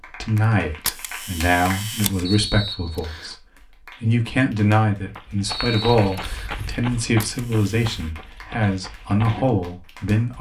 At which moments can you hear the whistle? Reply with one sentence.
You can hear the whistle from 2.2 to 3.4 s and from 5.4 to 6.5 s.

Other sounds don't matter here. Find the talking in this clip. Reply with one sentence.
The talking can be heard from 0.1 to 3.4 s and from 4.0 to 10.3 s.